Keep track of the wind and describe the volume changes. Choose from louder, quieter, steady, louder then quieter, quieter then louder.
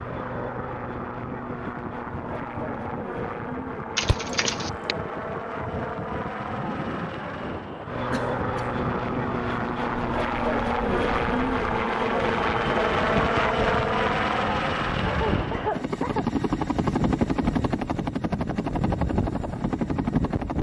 louder.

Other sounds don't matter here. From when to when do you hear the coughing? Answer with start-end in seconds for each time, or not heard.
4.0-5.0, 8.1-8.7, 15.3-16.2.